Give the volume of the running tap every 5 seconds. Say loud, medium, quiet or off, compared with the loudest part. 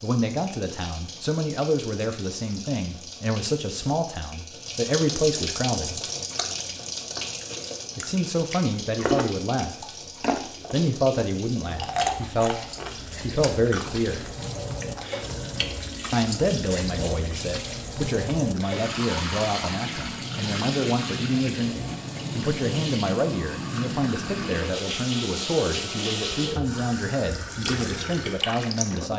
medium, loud, medium, loud, loud, loud.